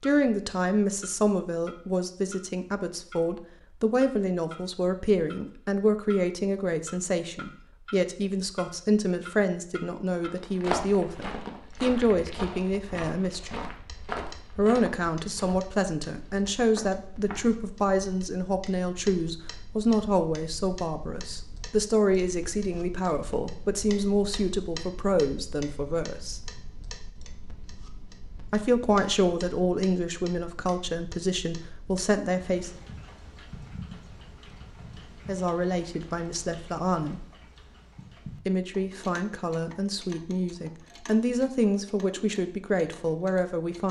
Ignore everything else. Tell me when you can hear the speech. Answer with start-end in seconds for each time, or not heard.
0.0-13.8, 14.6-26.5, 28.5-32.7, 35.2-37.2, 38.5-43.8.